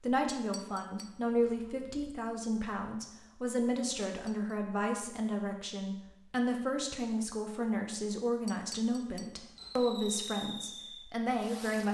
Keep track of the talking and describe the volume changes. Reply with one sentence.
The volume of the talking stays about the same.